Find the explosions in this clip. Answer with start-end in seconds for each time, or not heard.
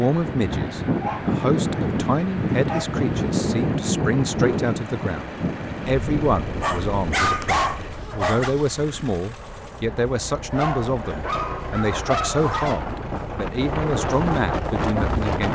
not heard.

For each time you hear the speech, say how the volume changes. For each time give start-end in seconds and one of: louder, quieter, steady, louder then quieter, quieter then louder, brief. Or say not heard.
0.0-15.5 steady.